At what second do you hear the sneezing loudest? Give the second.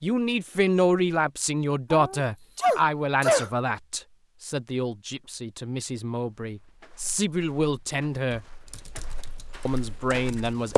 3 s.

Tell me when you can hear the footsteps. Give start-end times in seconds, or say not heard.
6.5-10.7.